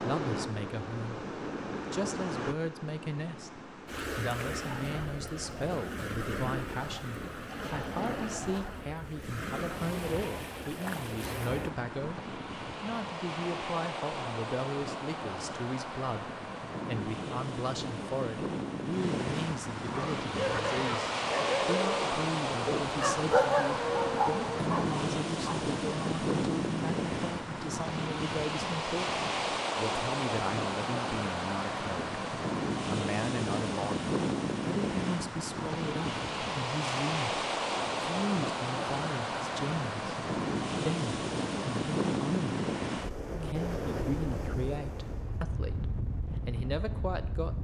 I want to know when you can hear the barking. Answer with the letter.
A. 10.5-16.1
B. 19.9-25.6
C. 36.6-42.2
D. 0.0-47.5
B.